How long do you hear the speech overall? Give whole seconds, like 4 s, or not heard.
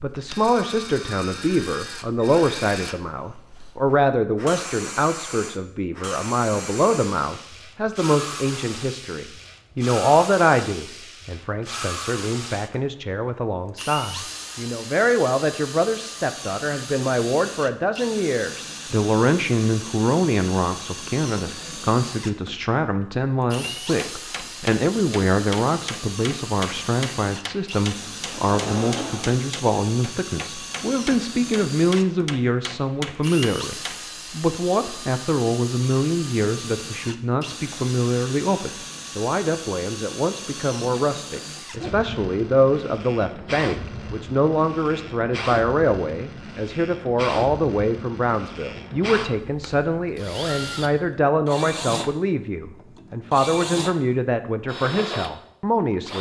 56 s.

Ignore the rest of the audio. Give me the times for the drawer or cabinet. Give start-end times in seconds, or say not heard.
28.3-29.4.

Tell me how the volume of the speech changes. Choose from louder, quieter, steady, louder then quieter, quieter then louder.
steady.